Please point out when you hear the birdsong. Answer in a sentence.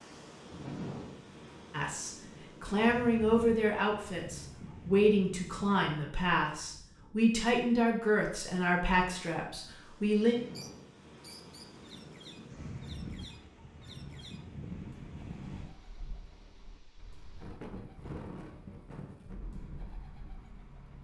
The birdsong can be heard from 10.3 to 20.9 s.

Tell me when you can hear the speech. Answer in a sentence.
You can hear the speech from 1.7 to 10.3 s.